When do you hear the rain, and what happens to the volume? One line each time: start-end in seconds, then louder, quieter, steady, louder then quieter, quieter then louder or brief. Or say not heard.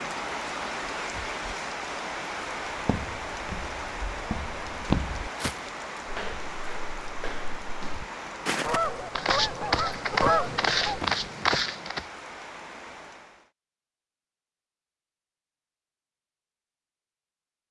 0.0-13.5 quieter.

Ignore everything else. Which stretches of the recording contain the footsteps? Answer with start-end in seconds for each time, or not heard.
2.7-12.1.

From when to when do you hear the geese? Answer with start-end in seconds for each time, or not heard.
8.6-11.1.